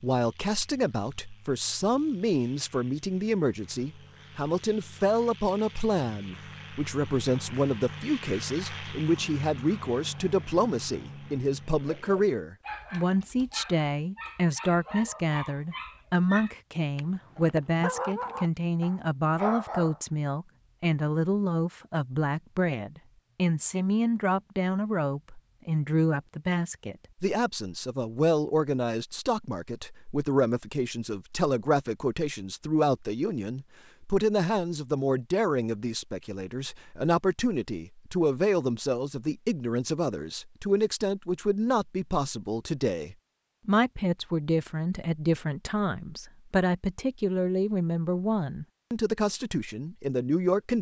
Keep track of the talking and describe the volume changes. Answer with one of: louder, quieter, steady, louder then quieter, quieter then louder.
steady.